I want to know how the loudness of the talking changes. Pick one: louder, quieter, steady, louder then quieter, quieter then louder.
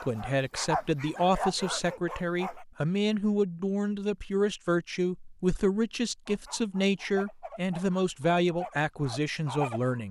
steady.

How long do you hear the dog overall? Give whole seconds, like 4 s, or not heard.
6 s.